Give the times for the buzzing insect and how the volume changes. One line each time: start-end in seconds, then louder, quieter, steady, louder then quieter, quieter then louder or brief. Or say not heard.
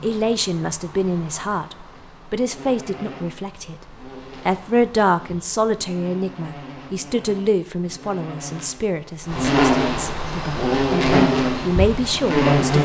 0.0-12.7 louder.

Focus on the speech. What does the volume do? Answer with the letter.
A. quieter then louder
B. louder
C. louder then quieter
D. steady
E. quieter
A.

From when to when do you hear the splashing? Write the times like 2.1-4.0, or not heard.
not heard.